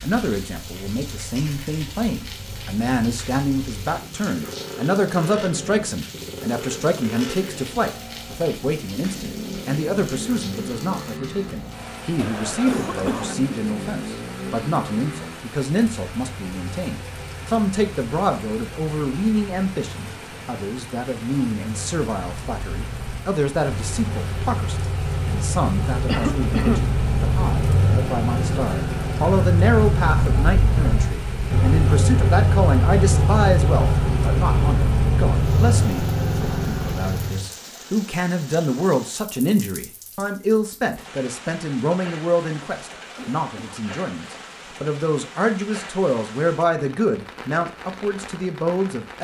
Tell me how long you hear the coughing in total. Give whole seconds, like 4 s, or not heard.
3 s.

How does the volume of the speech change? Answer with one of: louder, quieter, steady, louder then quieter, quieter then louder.
steady.